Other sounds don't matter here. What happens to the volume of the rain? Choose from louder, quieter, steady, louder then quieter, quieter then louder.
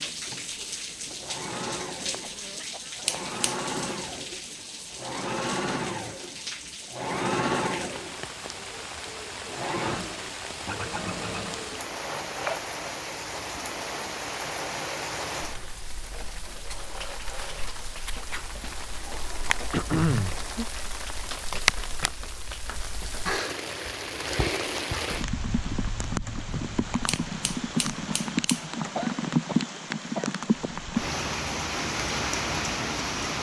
louder.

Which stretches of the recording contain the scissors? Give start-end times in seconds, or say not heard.
3.0-3.5, 27.1-28.6.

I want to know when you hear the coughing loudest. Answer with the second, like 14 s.
20 s.